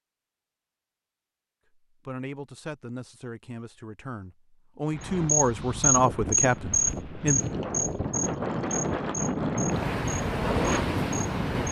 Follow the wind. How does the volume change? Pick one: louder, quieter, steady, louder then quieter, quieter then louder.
louder.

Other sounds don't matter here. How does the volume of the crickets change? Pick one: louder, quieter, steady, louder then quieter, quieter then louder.
quieter.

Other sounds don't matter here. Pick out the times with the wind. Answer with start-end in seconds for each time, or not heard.
4.9-11.6.